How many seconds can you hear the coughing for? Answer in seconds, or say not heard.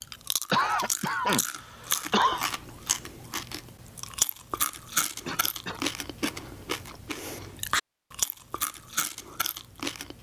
3 s.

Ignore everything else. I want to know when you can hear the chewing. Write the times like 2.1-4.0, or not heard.
0.0-10.1.